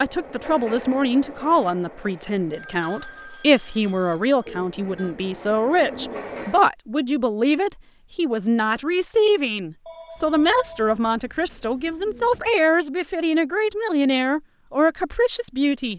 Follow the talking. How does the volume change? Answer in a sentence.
The volume of the talking stays about the same.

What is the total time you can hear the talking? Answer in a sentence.
The talking can be heard for 16 seconds in total.